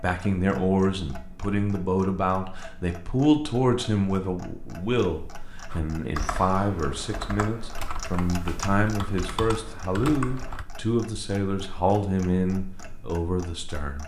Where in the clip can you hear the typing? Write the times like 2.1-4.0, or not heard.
5.7-10.7.